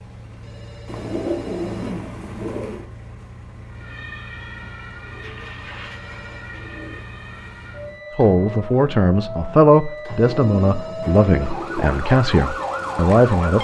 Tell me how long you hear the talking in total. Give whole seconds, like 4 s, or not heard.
5 s.